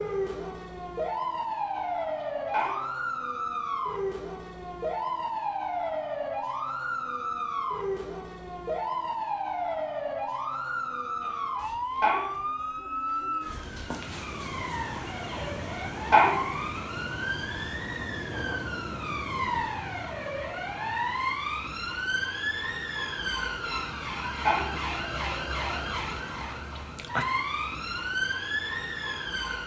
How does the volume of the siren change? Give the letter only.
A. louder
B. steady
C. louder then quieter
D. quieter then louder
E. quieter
B.